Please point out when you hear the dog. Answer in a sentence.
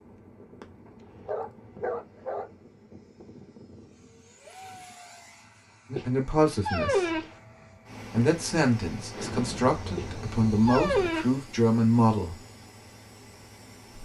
The dog can be heard from 1.2 to 2.5 s, from 6.0 to 7.3 s and from 9.9 to 11.3 s.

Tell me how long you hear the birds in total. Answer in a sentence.
You can't hear the birds here.